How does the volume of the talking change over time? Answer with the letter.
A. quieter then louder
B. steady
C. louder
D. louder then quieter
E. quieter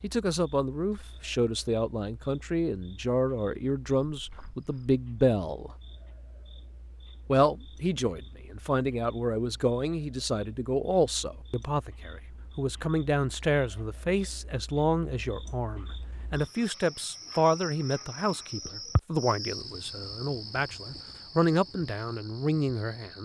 B.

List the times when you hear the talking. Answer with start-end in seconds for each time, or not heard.
0.0-5.7, 7.2-23.1.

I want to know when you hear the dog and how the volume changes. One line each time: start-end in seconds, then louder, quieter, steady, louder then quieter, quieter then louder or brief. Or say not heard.
not heard.